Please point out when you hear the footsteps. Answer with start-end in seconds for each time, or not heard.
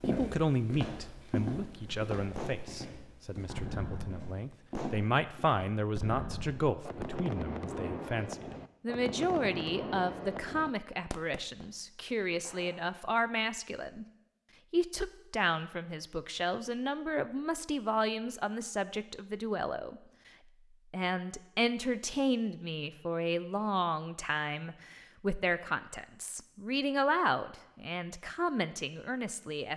0.0-5.8.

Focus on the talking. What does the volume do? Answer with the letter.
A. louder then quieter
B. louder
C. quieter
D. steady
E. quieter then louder
D.